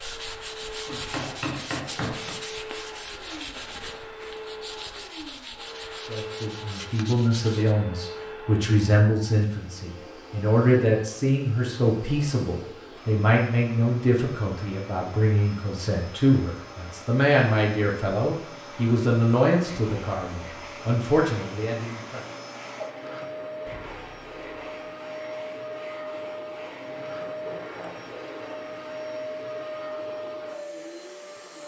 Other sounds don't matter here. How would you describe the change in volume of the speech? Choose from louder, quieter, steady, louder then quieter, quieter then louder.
steady.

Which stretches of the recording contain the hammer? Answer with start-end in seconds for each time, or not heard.
0.8-2.4.